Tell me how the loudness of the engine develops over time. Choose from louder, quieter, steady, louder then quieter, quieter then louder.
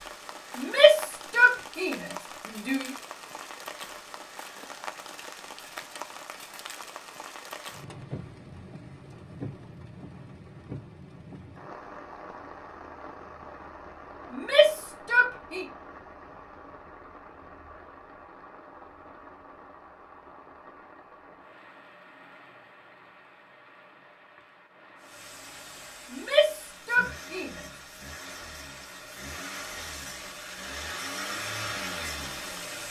louder.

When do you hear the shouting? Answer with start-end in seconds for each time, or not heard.
0.6-2.9, 14.3-15.7, 26.1-27.6.